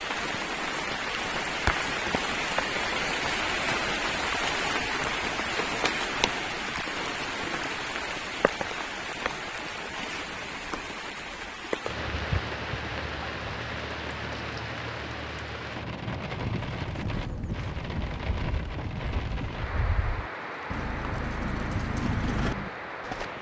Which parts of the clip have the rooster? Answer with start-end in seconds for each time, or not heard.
not heard.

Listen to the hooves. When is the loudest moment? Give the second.
22 s.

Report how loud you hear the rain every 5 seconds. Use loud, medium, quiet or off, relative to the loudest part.
loud, loud, medium, medium, medium.